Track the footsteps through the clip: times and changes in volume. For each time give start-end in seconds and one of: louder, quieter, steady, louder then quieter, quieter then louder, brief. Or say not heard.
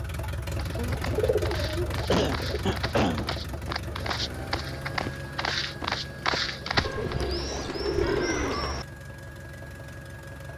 0.6-7.3 louder.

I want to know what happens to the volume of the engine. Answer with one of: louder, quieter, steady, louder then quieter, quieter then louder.
quieter.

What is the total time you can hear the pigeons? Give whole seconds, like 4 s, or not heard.
4 s.